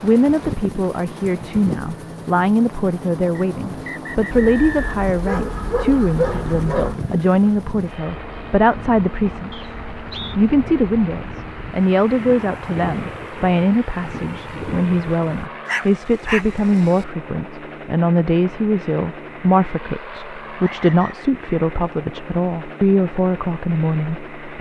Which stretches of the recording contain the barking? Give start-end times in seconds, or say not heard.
4.3-7.0, 15.7-17.1.